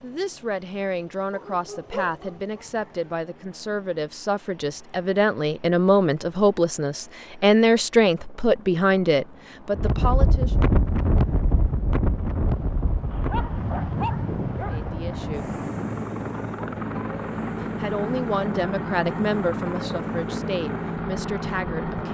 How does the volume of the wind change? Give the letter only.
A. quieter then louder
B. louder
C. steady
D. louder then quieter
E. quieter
E.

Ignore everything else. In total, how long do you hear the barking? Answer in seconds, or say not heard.
3 s.